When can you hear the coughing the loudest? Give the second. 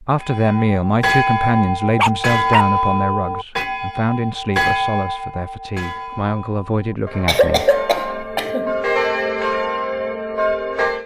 8 s.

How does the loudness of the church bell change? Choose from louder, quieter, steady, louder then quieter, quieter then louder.
quieter then louder.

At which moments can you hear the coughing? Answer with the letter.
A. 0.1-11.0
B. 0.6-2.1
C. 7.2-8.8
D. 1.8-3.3
C.